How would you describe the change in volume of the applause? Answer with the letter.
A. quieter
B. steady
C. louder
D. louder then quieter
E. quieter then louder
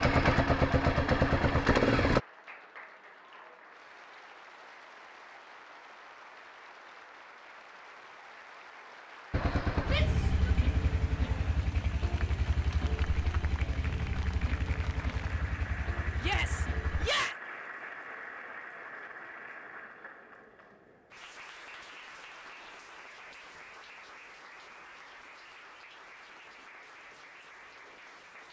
D.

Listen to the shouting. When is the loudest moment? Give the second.
17 s.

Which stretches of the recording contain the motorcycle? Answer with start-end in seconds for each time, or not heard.
0.0-2.2, 9.3-17.1.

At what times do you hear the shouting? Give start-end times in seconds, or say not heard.
9.8-10.5, 16.2-17.4.